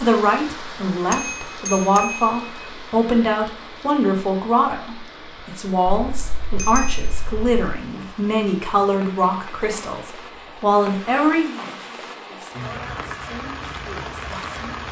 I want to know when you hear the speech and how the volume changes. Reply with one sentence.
The speech can be heard from 0.0 to 14.8 s, getting quieter.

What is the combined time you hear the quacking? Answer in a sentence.
You can't hear the quacking here.